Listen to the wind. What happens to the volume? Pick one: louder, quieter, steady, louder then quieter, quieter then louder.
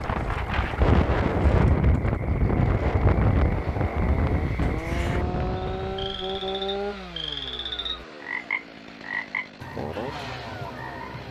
quieter.